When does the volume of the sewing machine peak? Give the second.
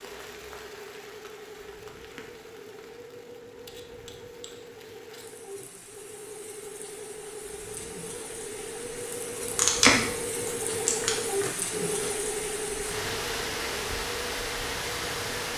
11 s.